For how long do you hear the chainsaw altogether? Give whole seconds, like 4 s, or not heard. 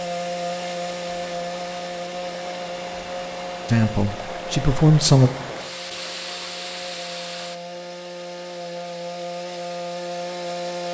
11 s.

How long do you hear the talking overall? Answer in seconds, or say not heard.
2 s.